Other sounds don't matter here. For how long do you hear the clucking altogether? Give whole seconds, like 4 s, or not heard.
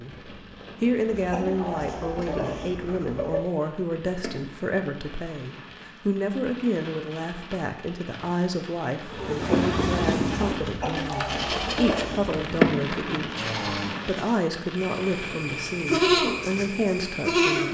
4 s.